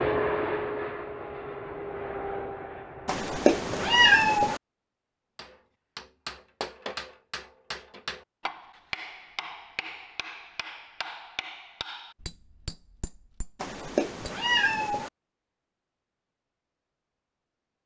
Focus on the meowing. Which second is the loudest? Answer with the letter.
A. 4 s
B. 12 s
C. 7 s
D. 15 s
A.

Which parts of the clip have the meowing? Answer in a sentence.
The meowing can be heard from 3.0 to 4.6 s and from 13.6 to 15.1 s.